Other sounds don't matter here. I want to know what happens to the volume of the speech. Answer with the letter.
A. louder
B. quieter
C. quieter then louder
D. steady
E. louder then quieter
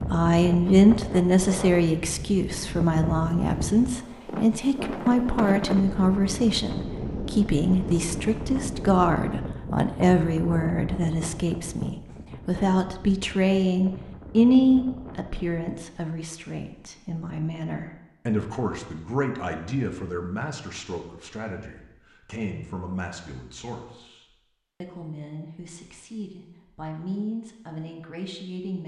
B.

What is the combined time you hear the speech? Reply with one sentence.
You can hear the speech for 29 seconds altogether.